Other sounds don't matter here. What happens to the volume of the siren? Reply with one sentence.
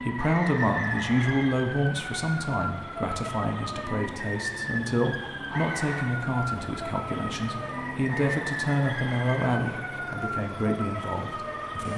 The volume of the siren stays about the same.